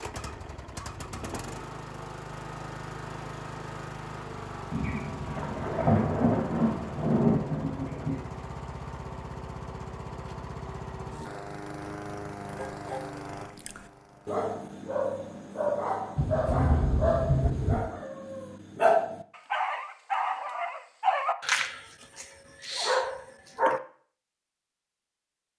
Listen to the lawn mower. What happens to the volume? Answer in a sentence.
The volume of the lawn mower stays about the same.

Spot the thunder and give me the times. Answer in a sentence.
The thunder can be heard from 4.7 to 8.2 s and from 16.1 to 17.8 s.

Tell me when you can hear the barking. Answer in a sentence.
The barking can be heard from 12.4 to 23.8 s.